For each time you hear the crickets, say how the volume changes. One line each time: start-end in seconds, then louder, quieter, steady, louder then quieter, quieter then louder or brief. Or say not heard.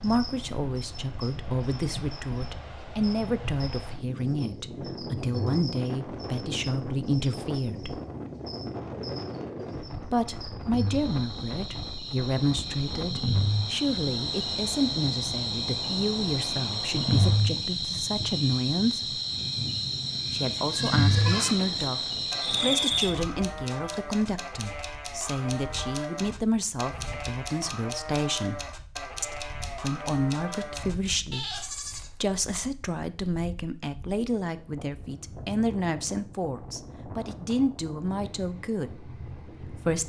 0.0-23.1 louder.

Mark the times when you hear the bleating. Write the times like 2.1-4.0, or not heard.
20.6-32.1.